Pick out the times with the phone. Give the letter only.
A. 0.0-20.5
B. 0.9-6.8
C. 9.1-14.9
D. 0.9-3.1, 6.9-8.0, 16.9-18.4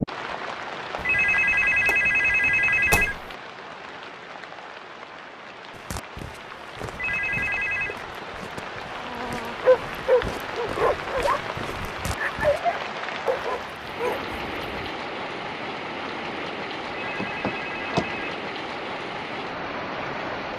D.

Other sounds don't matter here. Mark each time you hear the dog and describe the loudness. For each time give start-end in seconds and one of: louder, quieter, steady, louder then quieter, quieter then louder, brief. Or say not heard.
9.1-14.9 quieter.